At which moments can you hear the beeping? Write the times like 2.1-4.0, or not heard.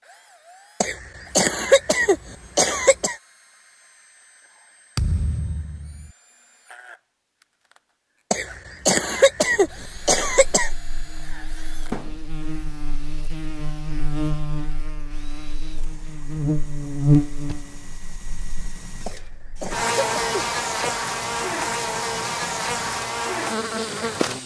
not heard.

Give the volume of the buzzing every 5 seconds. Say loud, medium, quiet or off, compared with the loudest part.
off, off, medium, loud, loud.